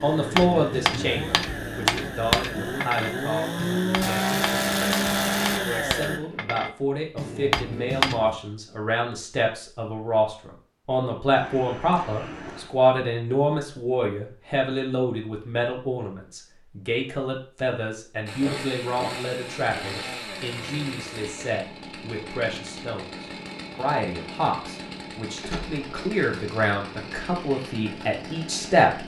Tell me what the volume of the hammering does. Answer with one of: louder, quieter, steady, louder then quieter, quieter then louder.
quieter then louder.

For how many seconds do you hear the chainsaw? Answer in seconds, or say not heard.
17 s.